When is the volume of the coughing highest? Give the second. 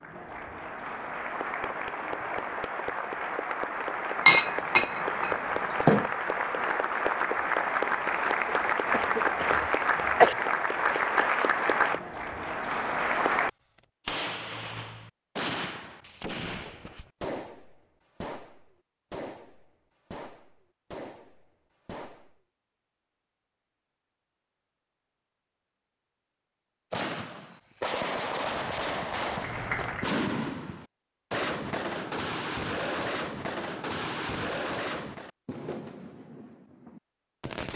10 s.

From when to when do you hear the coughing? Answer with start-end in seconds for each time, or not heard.
8.4-10.3.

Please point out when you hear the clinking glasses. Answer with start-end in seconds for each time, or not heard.
4.2-6.1.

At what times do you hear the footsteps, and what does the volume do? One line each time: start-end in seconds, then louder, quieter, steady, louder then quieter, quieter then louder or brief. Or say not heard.
not heard.